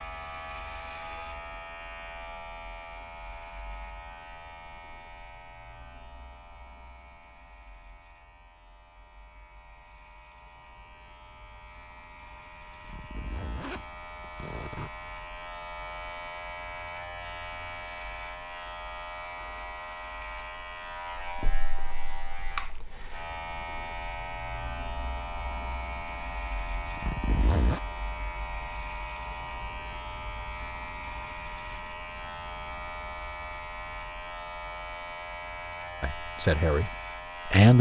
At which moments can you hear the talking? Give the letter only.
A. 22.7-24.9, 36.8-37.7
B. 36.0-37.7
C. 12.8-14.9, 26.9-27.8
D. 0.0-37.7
B.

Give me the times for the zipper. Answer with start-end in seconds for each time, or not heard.
12.8-14.9, 26.9-27.8.